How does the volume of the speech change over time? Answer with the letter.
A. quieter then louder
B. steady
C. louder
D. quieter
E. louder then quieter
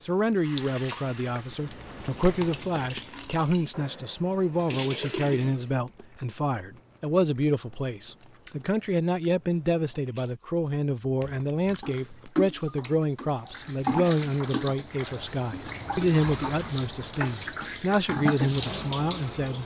B.